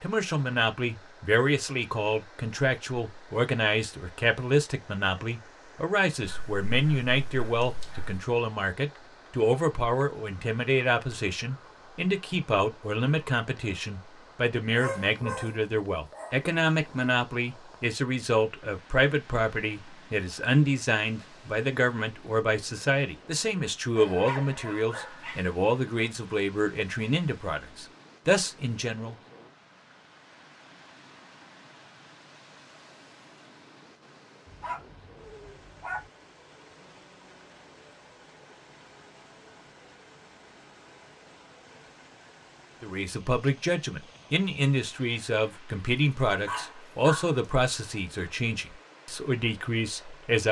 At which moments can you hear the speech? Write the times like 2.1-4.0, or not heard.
0.0-29.1, 42.8-50.4.